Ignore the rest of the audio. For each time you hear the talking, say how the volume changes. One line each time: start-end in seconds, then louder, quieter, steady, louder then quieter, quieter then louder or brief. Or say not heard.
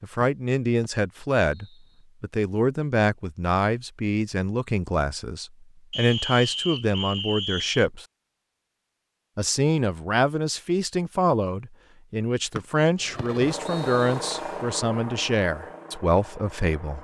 0.0-8.1 steady
9.3-16.9 steady.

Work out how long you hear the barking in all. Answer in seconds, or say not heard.
not heard.